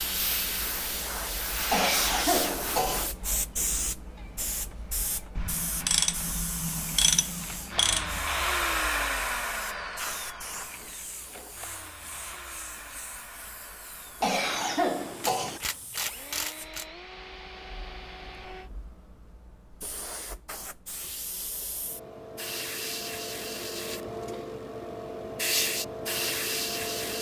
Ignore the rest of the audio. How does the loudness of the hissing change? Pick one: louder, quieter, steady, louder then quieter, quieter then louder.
quieter then louder.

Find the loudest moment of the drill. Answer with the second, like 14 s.
9 s.